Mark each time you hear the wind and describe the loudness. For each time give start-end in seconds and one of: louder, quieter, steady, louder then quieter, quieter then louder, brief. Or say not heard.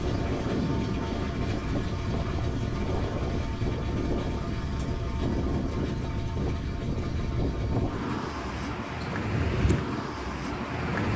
0.0-11.1 steady.